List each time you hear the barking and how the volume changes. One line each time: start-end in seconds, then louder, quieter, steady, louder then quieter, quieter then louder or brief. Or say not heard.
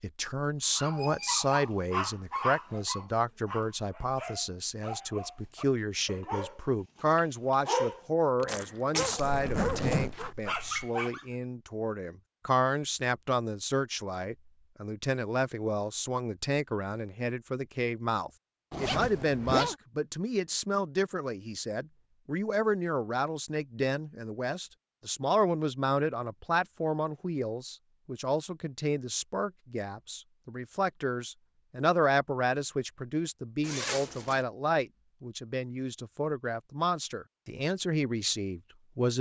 0.8-11.2 quieter then louder.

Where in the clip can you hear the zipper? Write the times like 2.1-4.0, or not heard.
9.2-10.8, 18.7-19.8, 33.6-34.5.